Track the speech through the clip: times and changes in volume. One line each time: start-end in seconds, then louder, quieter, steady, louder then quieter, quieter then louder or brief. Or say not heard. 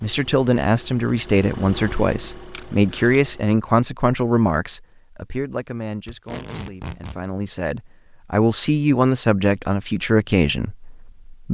0.0-11.5 quieter then louder.